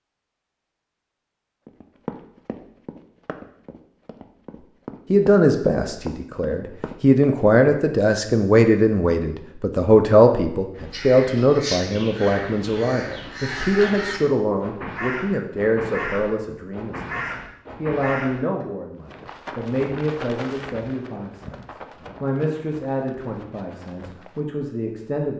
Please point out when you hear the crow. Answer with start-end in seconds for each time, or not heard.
10.8-18.6.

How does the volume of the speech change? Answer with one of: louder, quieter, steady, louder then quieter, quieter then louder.
quieter.